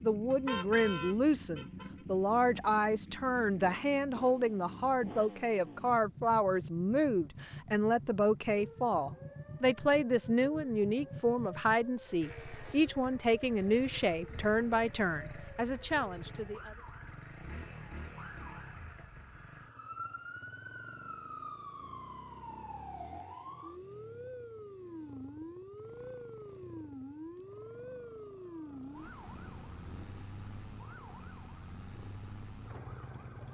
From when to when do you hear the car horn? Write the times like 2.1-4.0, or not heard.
0.3-1.9.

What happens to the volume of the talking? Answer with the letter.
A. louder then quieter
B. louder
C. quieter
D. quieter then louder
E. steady
E.